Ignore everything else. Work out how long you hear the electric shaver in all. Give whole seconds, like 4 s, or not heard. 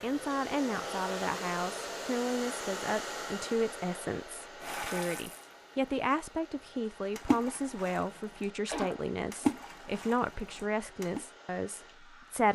not heard.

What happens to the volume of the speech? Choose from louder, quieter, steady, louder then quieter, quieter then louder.
steady.